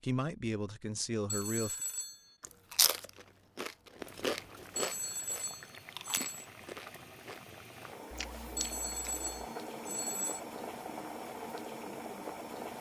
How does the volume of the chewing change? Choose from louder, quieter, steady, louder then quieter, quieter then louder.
quieter.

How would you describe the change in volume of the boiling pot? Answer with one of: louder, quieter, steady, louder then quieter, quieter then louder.
louder.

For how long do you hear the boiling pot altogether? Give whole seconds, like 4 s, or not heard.
9 s.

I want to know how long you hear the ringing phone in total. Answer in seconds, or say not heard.
5 s.